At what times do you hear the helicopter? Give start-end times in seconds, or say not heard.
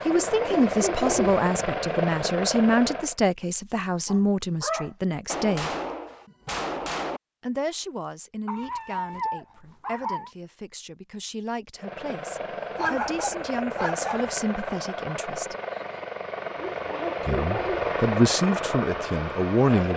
0.0-3.1, 11.8-19.9.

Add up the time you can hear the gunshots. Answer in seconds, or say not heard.
2 s.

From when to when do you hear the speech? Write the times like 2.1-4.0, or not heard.
0.1-5.8, 7.4-15.6, 17.2-19.9.